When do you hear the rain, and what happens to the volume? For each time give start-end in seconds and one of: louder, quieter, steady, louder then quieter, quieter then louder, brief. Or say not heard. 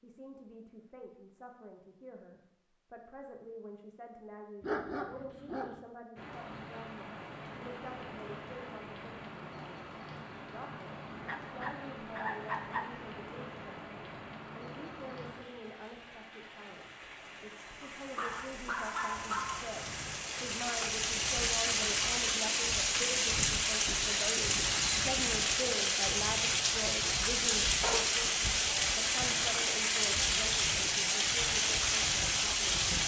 6.2-33.0 louder.